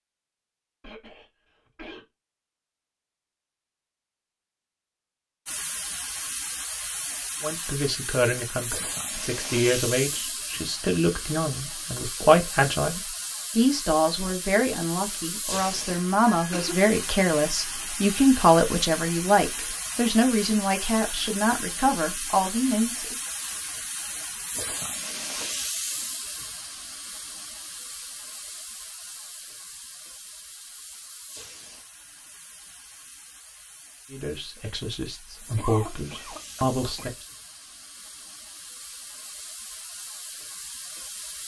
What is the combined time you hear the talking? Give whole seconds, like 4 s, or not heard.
19 s.